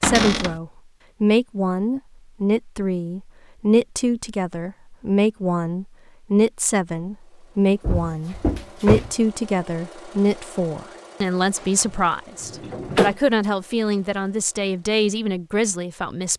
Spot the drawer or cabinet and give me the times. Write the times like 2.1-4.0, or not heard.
0.0-0.6, 7.8-9.1, 11.6-13.2.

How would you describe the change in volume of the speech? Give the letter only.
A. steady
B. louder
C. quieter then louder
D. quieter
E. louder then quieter
A.